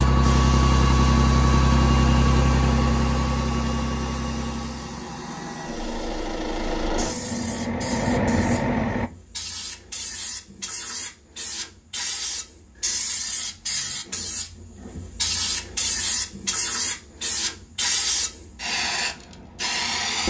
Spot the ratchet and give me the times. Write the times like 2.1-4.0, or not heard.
not heard.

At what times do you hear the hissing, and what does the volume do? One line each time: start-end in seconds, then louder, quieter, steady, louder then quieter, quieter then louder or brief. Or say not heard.
0.0-20.2 louder.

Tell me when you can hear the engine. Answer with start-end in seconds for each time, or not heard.
0.0-9.1.